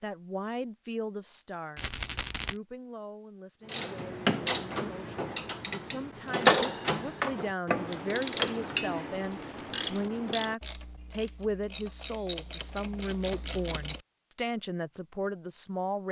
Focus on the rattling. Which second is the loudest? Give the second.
2 s.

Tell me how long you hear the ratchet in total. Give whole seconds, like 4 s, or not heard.
10 s.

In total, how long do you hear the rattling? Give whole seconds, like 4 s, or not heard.
2 s.